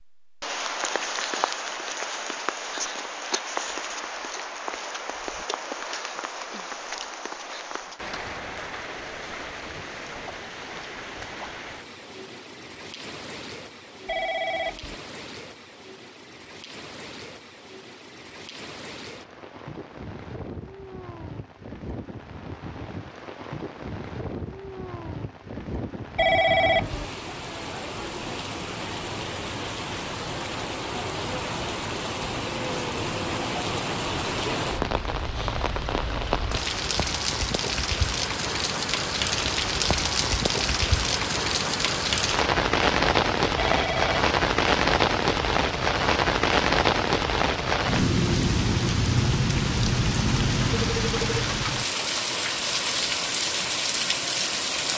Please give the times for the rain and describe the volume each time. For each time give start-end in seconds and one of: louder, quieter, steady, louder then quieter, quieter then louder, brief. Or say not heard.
0.2-54.9 quieter then louder.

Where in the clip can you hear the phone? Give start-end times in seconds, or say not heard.
14.1-14.9, 26.1-27.1, 43.5-44.2.